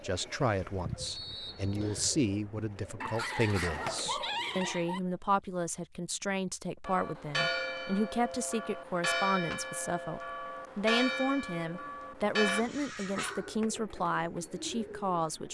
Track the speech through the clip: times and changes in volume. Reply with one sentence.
You can hear the speech from 0.0 to 15.5 s, at a steady volume.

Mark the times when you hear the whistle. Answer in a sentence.
You can hear the whistle from 1.0 to 2.1 s.